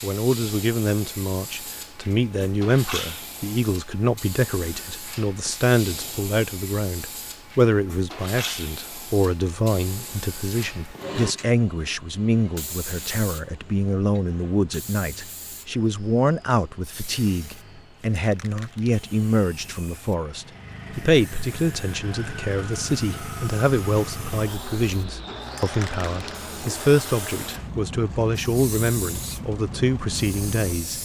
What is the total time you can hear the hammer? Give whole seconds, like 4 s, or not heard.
not heard.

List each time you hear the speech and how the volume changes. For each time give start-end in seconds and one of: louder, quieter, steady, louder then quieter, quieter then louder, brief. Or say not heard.
0.0-31.0 steady.